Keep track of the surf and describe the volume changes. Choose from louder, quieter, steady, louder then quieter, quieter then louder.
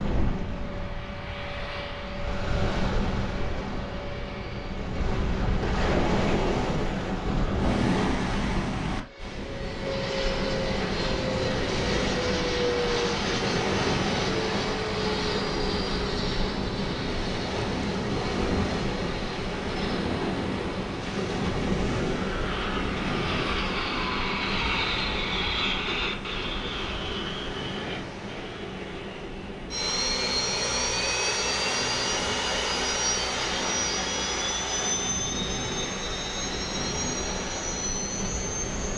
quieter.